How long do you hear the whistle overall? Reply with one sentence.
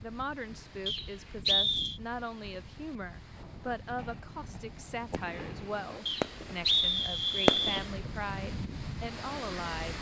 You can hear the whistle for 3 seconds altogether.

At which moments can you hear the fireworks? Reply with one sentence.
You can hear the fireworks from 3.4 to 6.6 s and from 7.5 to 8.1 s.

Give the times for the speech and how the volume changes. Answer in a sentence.
The speech can be heard from 0.0 to 9.9 s, at a steady volume.